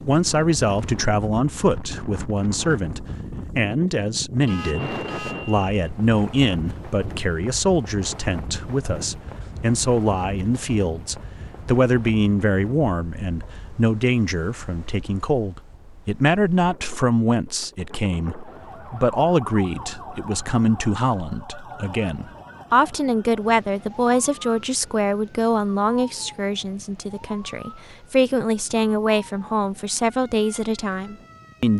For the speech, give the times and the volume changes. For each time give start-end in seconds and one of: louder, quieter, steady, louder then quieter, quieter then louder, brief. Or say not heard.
0.1-31.7 steady.